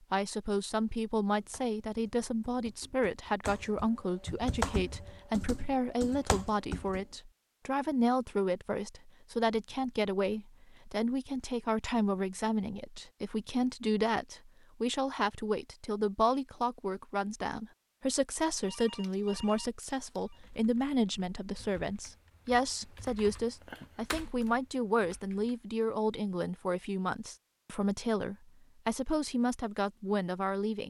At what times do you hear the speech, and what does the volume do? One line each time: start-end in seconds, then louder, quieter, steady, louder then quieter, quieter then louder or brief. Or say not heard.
0.1-30.8 steady.